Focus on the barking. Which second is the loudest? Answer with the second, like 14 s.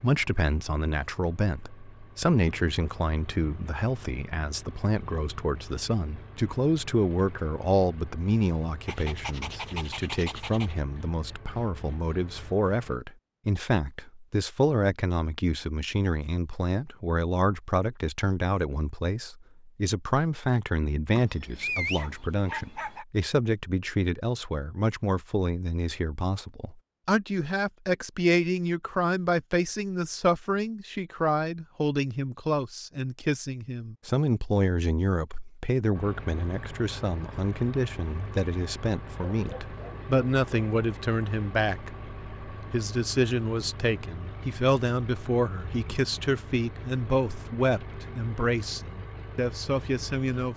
22 s.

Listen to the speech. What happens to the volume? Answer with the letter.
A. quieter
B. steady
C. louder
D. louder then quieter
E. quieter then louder
B.